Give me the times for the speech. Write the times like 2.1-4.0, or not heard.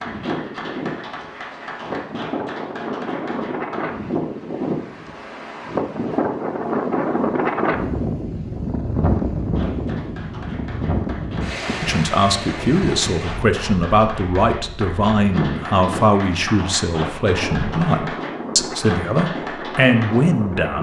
11.8-20.7.